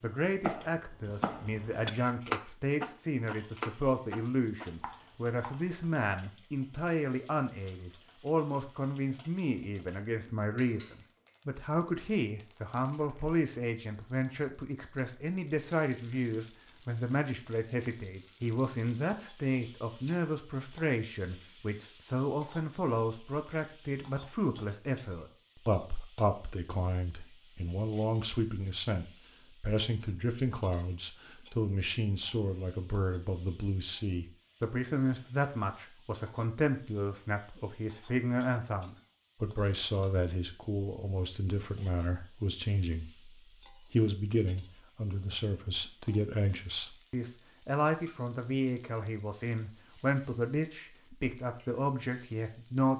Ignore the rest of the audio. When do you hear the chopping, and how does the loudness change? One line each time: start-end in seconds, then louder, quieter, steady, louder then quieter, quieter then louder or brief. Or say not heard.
0.4-5.8 louder then quieter.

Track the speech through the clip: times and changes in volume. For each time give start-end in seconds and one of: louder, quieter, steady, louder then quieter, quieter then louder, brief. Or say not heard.
0.0-52.9 steady.